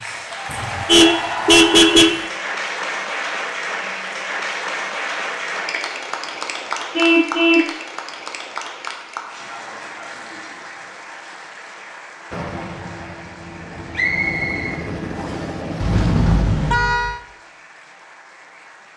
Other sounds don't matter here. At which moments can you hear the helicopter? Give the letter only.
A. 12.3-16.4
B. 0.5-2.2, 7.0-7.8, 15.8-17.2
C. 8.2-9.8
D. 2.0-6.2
A.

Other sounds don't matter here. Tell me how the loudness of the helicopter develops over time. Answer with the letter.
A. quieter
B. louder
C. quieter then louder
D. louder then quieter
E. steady
B.